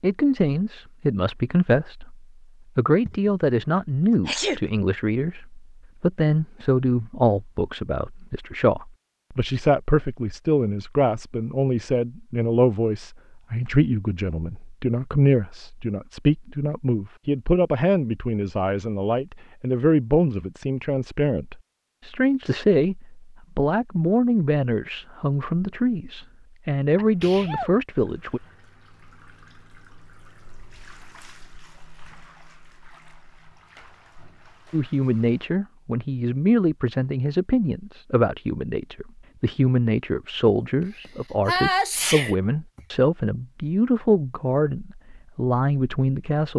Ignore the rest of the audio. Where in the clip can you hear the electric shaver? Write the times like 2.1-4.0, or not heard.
not heard.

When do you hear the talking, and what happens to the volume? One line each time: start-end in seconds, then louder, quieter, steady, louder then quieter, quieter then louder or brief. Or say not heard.
0.0-28.4 steady
34.7-46.5 steady.